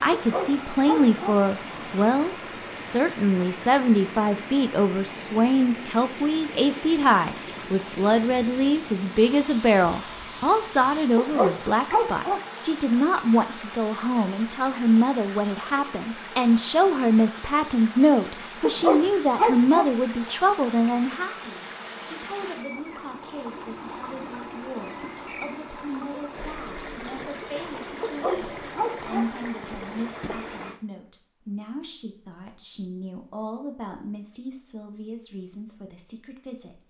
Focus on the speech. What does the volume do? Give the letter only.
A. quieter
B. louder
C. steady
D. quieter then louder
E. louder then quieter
A.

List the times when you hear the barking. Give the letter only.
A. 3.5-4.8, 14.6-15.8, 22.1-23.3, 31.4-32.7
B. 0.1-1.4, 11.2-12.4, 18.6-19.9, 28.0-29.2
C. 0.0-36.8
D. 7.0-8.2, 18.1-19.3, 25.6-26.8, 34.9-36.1
B.